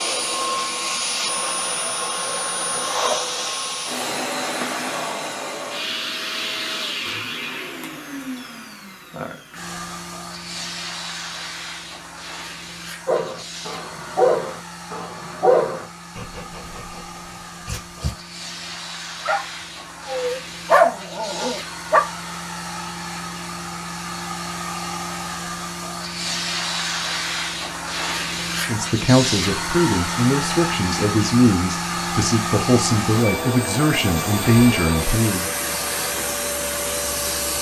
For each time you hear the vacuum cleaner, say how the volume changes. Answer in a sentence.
The vacuum cleaner can be heard from 0.0 to 37.5 s, getting quieter then louder.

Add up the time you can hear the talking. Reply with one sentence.
The talking can be heard for 7 seconds in total.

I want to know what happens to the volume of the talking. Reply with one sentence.
The volume of the talking stays about the same.